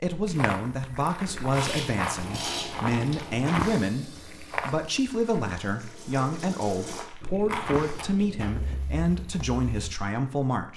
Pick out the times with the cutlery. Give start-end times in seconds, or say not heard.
not heard.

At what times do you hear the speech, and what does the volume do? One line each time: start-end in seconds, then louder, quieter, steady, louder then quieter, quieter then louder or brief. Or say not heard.
0.0-10.7 steady.